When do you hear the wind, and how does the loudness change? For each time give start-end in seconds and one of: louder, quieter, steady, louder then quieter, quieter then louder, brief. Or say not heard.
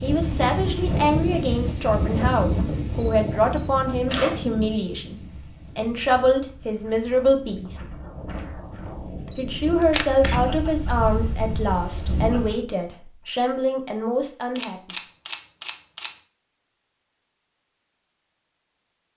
0.0-12.7 quieter then louder.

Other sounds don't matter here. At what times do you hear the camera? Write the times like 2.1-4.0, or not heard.
3.0-4.5, 9.3-10.4, 14.6-16.1.